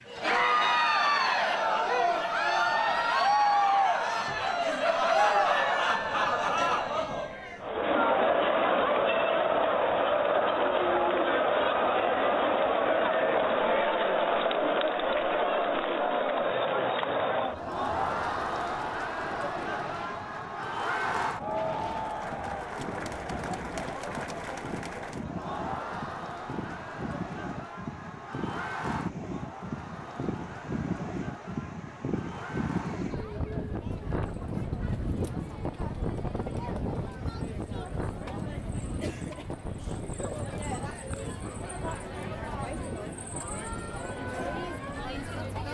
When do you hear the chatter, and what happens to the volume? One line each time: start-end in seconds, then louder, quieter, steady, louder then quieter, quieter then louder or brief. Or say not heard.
0.1-45.6 quieter.